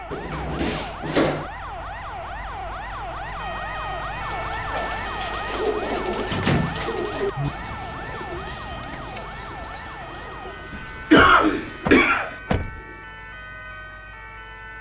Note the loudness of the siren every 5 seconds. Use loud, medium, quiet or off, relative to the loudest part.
loud, loud, medium.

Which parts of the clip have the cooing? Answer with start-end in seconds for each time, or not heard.
4.1-13.2.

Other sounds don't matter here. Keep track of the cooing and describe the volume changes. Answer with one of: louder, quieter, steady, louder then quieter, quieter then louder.
quieter.